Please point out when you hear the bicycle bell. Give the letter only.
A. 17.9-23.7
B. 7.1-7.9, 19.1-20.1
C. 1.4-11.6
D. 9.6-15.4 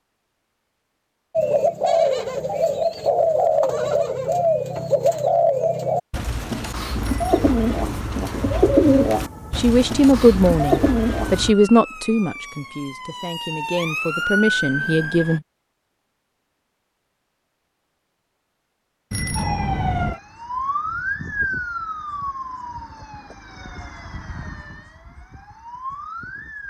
B.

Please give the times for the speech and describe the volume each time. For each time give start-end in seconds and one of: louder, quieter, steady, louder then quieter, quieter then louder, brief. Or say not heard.
9.6-15.4 quieter then louder.